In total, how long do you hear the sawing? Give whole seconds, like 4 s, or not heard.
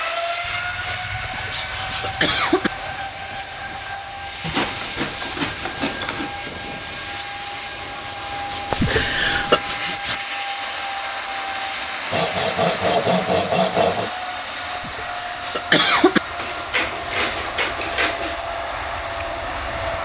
10 s.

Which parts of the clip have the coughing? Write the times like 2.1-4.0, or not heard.
1.2-2.7, 8.7-9.6, 14.8-16.2.